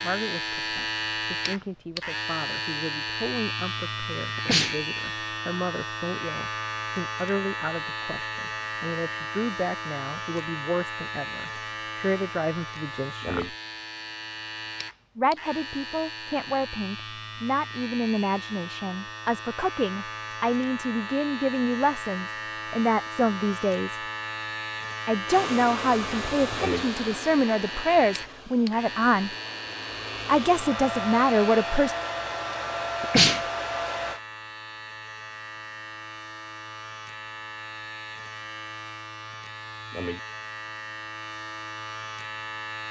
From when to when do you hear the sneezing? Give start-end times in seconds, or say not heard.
4.3-4.8, 33.0-33.5.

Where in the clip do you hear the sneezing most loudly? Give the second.
33 s.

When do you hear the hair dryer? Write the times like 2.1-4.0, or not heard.
25.2-34.2.